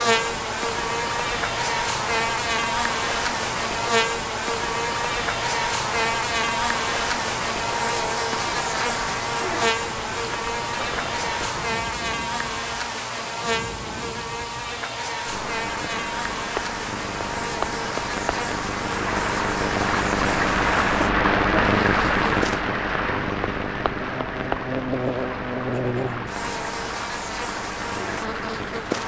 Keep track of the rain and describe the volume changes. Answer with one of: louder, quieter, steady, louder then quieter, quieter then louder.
louder then quieter.